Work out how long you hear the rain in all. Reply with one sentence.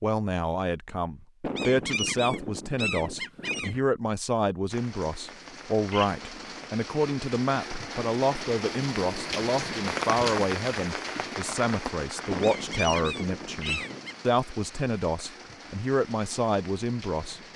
You can hear the rain for 13 seconds altogether.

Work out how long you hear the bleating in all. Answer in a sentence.
You can't hear the bleating here.